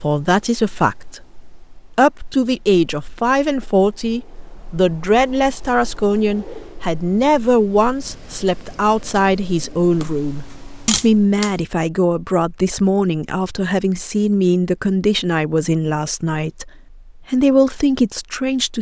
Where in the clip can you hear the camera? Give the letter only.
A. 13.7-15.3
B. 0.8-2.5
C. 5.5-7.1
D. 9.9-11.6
D.